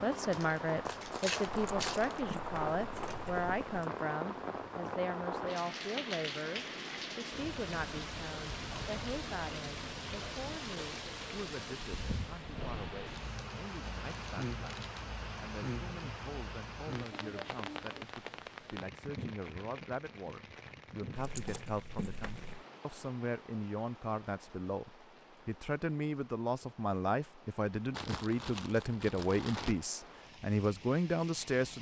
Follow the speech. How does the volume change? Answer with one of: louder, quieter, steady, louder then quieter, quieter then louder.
quieter then louder.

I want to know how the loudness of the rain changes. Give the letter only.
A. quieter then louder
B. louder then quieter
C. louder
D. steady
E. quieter
E.